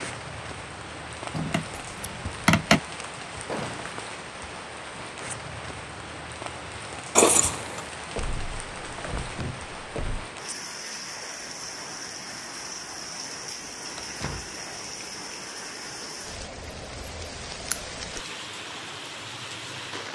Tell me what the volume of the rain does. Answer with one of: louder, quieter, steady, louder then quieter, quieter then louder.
steady.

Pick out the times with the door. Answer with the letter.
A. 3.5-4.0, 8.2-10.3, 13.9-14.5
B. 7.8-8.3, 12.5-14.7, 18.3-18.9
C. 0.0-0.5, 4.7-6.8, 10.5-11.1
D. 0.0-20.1
A.